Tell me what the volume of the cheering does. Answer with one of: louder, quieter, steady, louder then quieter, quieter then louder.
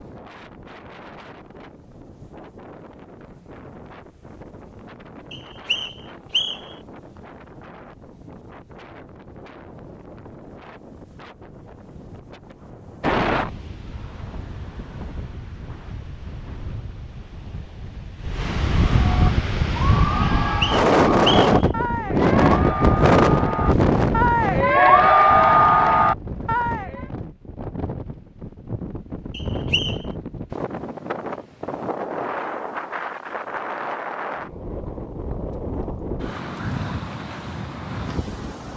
louder.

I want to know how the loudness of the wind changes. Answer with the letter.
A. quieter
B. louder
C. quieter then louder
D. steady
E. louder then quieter
E.